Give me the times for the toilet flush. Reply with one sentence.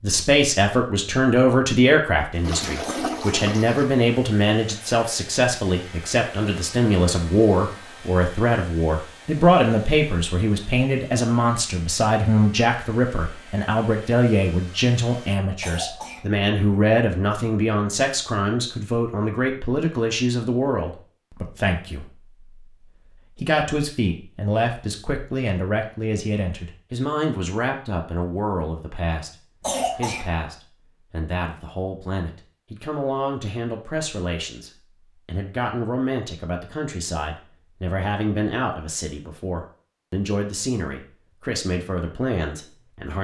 You can hear the toilet flush from 2.4 to 4.0 s.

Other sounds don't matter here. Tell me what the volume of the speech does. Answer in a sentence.
The volume of the speech goes down.